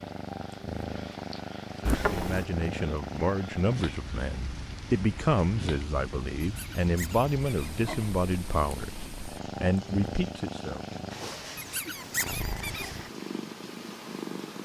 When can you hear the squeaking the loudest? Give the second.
2 s.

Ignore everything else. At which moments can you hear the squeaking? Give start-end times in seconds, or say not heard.
1.9-2.5, 6.4-7.8, 11.6-13.1.